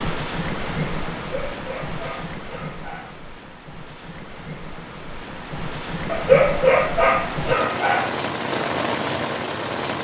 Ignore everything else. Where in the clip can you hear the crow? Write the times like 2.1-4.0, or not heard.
not heard.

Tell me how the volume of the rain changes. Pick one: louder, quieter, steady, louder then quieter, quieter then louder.
quieter then louder.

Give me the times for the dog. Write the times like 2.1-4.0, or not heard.
1.4-3.1, 6.0-8.1.